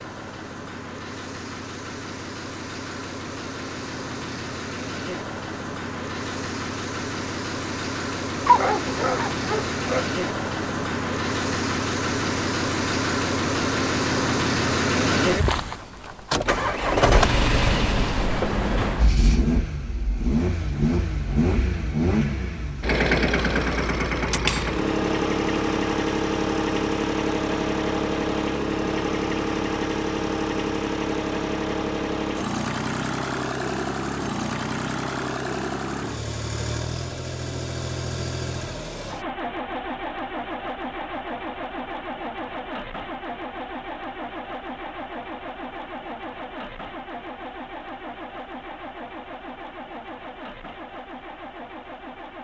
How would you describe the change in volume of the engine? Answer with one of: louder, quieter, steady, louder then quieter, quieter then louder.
louder then quieter.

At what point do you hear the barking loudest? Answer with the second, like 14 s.
9 s.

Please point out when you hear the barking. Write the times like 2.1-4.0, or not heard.
8.4-10.1.